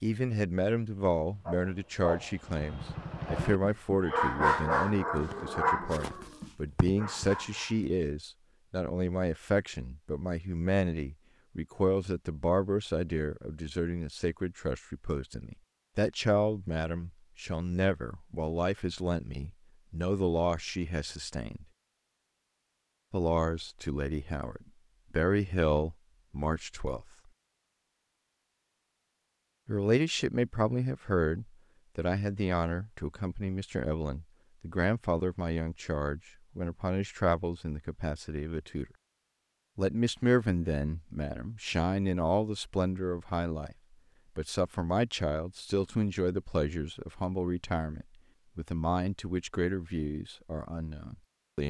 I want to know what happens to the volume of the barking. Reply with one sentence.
The loudness of the barking goes up, then down.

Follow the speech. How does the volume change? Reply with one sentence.
The volume of the speech stays about the same.